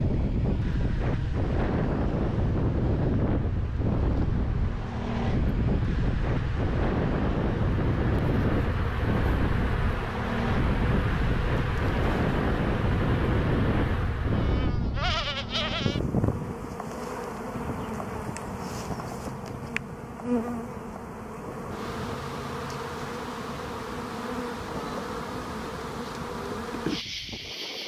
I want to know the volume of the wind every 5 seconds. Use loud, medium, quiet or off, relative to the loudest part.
loud, loud, loud, medium, quiet, quiet.